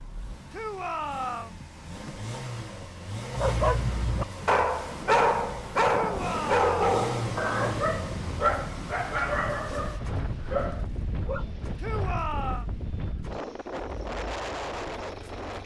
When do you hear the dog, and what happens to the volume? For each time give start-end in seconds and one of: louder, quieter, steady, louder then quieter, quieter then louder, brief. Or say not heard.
3.3-11.4 quieter.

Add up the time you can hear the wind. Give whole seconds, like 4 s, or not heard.
11 s.